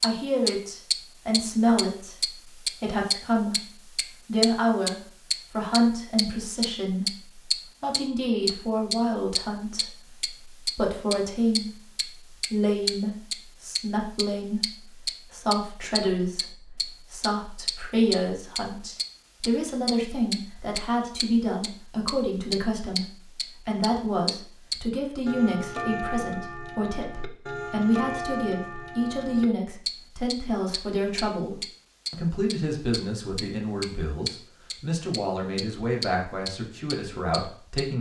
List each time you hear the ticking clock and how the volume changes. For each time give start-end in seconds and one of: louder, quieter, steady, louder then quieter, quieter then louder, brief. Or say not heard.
0.0-37.9 quieter.